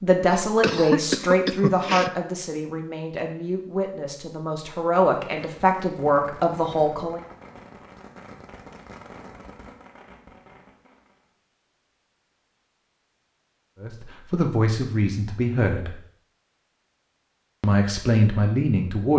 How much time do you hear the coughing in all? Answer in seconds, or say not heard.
2 s.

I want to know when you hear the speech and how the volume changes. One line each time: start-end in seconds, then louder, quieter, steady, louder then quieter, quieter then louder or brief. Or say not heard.
0.0-7.2 quieter then louder
13.8-15.9 brief
17.6-19.1 brief.